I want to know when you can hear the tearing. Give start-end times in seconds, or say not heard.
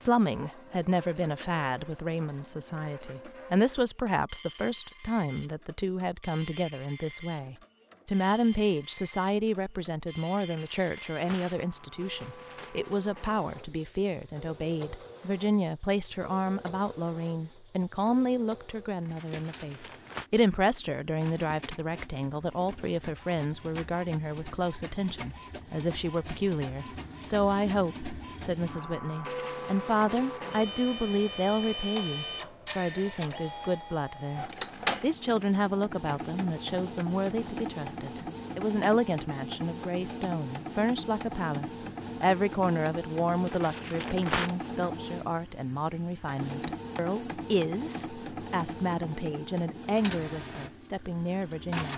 10.4-12.8, 19.3-20.3, 43.5-44.5.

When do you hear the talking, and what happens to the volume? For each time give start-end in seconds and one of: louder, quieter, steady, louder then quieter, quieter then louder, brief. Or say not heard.
0.0-51.9 steady.